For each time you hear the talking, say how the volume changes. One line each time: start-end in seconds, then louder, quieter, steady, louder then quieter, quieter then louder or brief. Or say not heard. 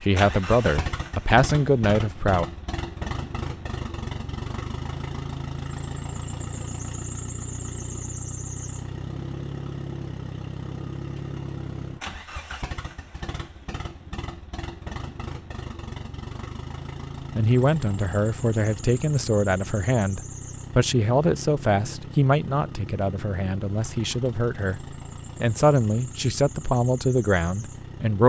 0.0-2.5 brief
17.4-28.2 steady.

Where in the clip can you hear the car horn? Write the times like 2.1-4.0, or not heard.
not heard.